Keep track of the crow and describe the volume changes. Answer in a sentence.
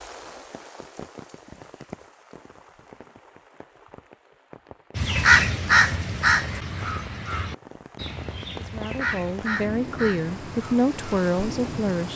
The loudness of the crow goes down.